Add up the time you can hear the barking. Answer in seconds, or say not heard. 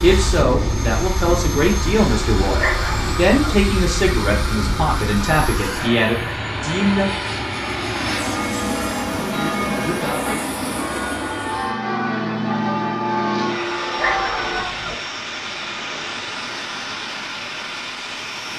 2 s.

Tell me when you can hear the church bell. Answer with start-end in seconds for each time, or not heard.
8.2-14.7.